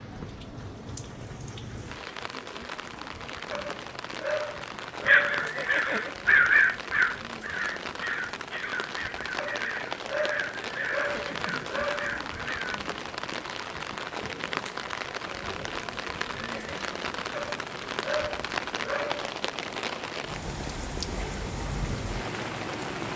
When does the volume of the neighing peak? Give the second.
6 s.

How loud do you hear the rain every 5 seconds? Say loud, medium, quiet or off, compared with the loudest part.
medium, loud, loud, loud, loud.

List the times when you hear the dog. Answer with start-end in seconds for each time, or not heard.
3.5-5.5, 9.3-12.2, 17.3-19.3.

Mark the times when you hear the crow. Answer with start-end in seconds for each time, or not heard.
5.0-12.8.